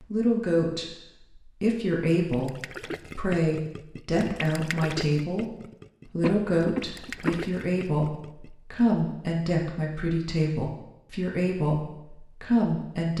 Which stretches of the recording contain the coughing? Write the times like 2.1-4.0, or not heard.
6.2-7.5.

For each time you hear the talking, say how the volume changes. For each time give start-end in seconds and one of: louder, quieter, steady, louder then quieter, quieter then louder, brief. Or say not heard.
0.0-13.1 steady.